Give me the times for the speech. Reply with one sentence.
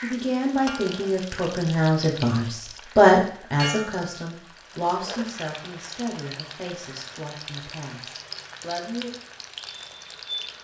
You can hear the speech from 0.0 to 9.1 s.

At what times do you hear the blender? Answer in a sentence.
The blender can't be heard in this clip.